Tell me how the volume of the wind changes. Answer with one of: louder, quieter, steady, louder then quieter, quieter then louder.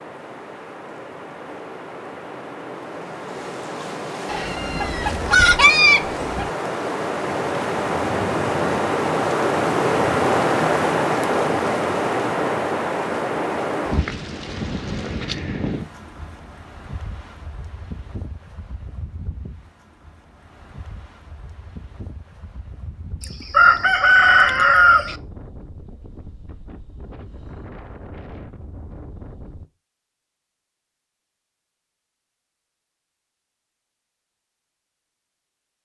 louder then quieter.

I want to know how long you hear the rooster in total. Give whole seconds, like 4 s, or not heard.
4 s.